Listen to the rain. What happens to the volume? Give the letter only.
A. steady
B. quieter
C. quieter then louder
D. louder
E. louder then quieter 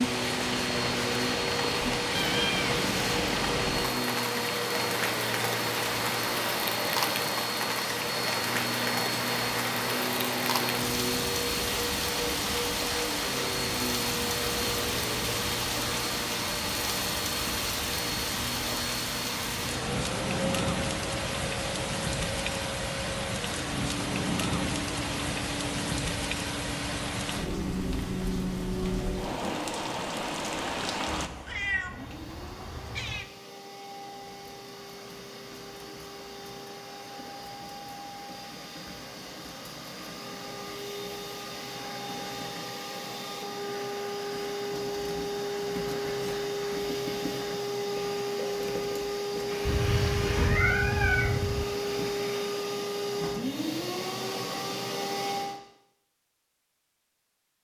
A.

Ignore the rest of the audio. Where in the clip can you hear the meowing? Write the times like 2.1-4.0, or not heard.
2.1-3.8, 31.1-33.3, 49.6-51.6.